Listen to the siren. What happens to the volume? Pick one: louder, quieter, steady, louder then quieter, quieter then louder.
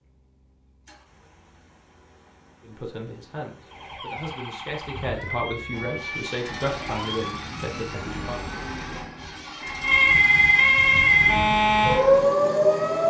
quieter then louder.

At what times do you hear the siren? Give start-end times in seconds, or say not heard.
3.6-13.0.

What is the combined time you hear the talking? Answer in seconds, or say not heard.
6 s.